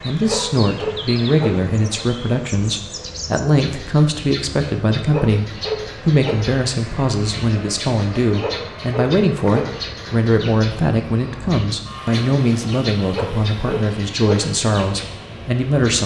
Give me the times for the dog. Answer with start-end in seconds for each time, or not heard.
0.2-1.5, 5.0-6.3, 8.3-9.6, 13.1-14.3.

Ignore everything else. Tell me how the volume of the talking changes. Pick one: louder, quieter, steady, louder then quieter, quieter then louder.
steady.